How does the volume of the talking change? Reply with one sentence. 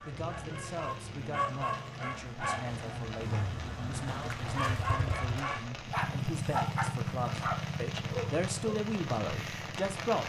The volume of the talking goes up.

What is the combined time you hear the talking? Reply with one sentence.
The talking can be heard for 10 seconds in total.